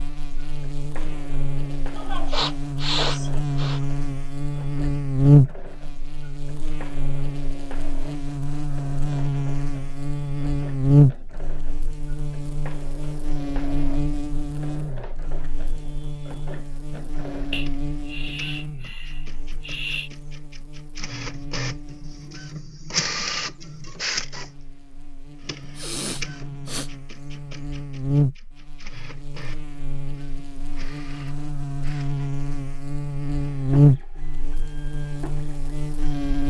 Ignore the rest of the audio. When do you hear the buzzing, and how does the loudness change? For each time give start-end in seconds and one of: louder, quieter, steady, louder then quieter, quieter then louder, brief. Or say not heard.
0.0-36.4 quieter then louder.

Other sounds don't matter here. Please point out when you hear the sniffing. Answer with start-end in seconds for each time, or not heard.
1.9-3.8, 17.5-20.1, 25.8-26.9.